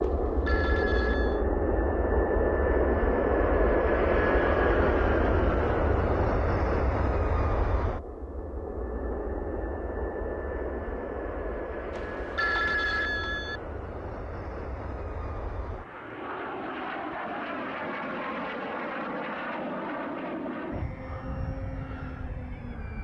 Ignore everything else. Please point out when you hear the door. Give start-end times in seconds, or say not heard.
not heard.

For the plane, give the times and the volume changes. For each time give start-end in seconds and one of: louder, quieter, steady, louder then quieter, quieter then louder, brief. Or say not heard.
0.0-22.9 quieter.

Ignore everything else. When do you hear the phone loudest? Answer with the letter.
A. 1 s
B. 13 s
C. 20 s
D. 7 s
B.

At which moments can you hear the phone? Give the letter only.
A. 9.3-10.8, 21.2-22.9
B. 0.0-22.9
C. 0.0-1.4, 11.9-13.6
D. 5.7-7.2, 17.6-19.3
C.